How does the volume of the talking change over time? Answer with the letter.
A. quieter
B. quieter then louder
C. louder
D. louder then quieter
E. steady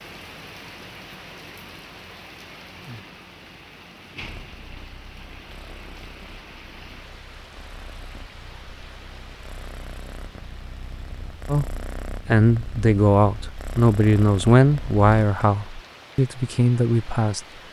E.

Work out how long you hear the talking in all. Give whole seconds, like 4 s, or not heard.
6 s.